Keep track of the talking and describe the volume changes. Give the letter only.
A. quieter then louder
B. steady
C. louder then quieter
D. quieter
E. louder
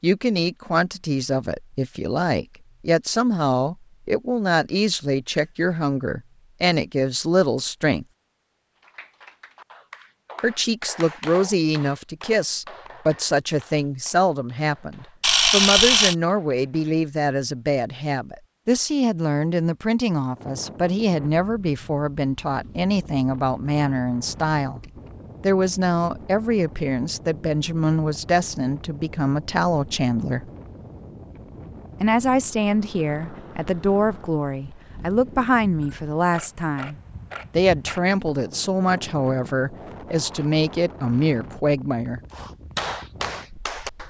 B.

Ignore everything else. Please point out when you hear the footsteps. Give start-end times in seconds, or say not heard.
not heard.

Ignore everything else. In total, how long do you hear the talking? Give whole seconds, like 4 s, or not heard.
38 s.